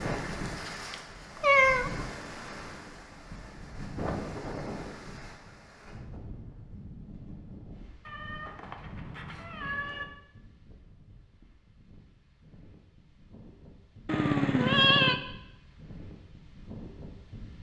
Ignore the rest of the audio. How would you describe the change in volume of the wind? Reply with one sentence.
The volume of the wind goes down, then up.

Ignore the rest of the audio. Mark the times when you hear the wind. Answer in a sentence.
The wind can be heard from 0.0 to 17.5 s.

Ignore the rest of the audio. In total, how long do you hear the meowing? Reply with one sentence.
You can hear the meowing for 4 seconds altogether.